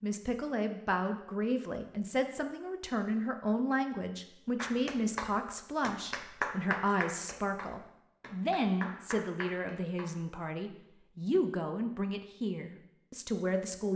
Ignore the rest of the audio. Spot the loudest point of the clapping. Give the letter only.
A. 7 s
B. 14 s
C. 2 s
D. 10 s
A.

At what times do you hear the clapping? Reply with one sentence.
You can hear the clapping from 4.5 to 10.2 s.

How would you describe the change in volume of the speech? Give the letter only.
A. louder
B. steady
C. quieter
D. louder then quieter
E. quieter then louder
B.